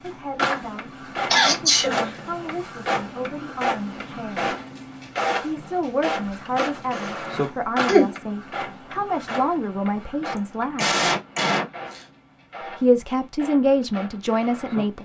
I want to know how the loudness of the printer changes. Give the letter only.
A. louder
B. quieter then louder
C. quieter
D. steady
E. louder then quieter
C.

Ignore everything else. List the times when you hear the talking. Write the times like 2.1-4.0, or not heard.
0.0-4.5, 5.4-11.0, 12.8-15.0.